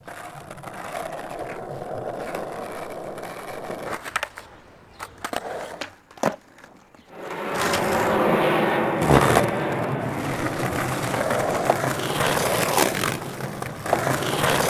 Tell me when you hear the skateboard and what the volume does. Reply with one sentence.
You can hear the skateboard from 0.0 to 14.6 s, getting louder.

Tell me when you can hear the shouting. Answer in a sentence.
You can't hear the shouting here.